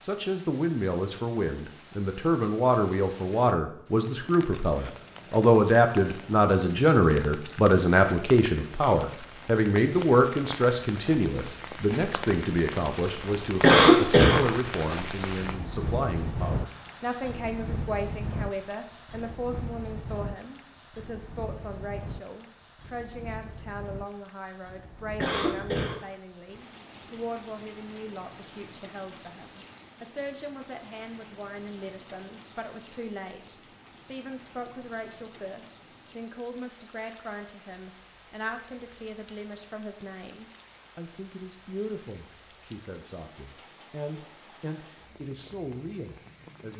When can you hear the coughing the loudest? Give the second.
14 s.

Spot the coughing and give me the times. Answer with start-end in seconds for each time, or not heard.
13.6-14.4, 25.2-26.0.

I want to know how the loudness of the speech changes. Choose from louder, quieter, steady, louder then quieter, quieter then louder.
quieter.